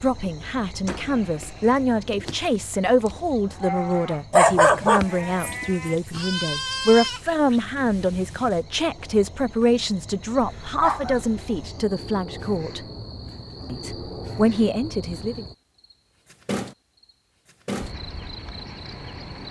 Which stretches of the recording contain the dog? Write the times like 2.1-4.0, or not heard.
4.3-6.2, 10.4-11.7.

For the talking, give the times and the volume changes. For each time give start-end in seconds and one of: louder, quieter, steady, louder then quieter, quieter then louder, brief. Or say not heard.
0.0-12.8 steady
13.7-15.4 brief.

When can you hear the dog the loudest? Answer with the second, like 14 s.
5 s.